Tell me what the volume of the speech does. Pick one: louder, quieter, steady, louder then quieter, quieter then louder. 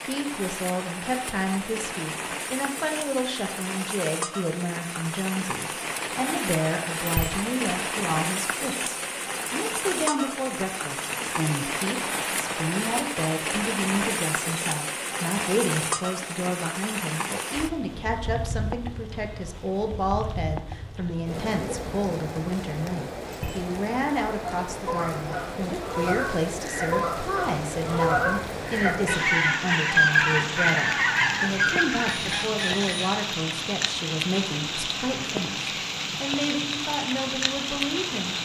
steady.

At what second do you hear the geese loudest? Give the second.
30 s.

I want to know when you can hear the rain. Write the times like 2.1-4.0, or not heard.
0.0-38.3.